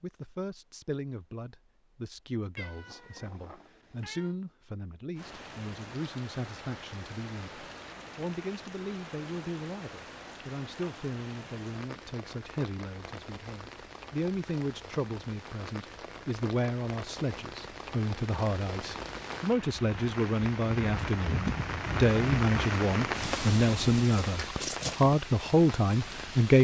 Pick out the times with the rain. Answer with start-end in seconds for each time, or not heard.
5.2-26.5.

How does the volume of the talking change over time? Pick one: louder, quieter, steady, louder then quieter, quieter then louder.
louder.